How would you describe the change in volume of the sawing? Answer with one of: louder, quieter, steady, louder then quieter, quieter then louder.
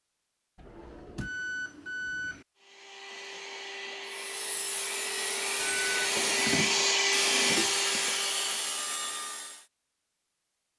steady.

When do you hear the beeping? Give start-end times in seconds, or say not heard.
1.2-2.5, 5.5-6.2.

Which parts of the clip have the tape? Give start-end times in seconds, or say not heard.
not heard.